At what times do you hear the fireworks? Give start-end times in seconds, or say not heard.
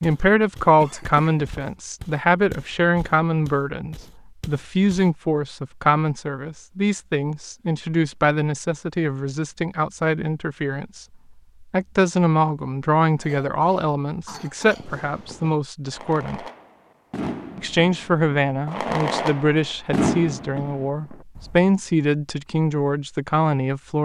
14.8-21.6.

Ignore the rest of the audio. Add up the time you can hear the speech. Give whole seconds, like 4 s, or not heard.
23 s.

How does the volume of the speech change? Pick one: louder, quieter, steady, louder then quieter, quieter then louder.
steady.